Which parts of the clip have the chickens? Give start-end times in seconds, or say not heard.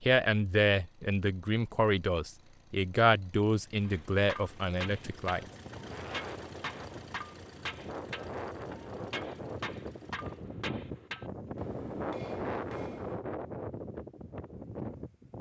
not heard.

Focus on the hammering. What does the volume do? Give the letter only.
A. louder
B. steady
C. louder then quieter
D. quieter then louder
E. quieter
B.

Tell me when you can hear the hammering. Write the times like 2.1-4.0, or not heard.
3.9-13.2.